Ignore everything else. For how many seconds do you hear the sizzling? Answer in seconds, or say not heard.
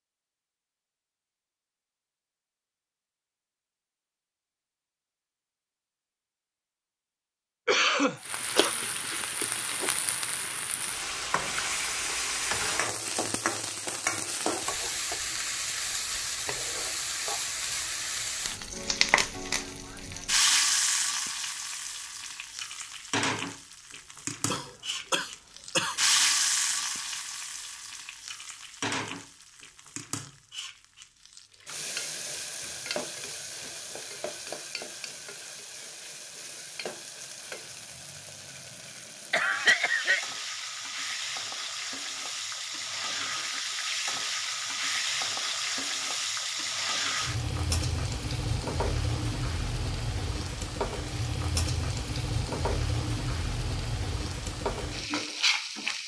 48 s.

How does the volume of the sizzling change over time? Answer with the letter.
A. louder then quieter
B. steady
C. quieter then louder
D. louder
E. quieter
C.